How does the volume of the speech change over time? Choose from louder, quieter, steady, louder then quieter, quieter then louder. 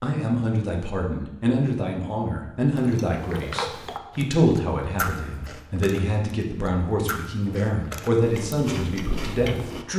steady.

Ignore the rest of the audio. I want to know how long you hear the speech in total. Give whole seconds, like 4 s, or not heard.
10 s.